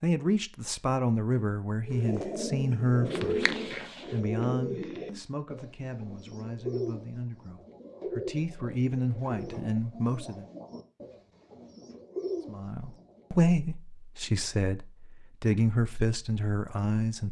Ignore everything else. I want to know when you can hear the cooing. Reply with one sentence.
The cooing can be heard from 1.9 to 13.3 s.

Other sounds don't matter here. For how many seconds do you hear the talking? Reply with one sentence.
You can hear the talking for 15 seconds altogether.